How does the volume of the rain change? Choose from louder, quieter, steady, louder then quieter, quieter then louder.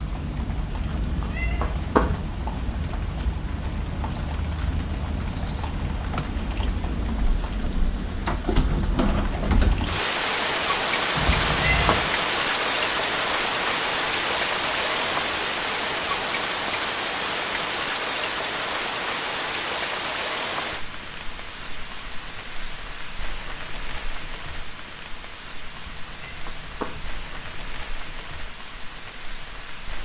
louder then quieter.